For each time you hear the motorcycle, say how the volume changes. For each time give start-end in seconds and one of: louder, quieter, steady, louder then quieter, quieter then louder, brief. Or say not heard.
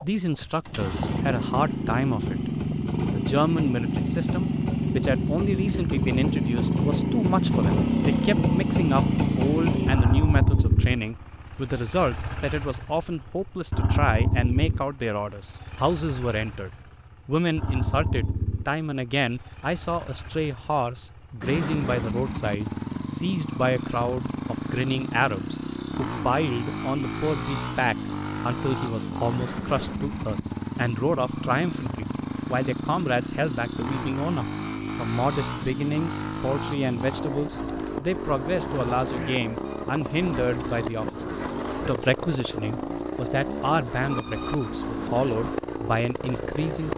0.0-46.9 quieter.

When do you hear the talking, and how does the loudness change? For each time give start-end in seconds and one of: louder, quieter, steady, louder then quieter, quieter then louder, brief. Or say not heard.
0.0-46.9 steady.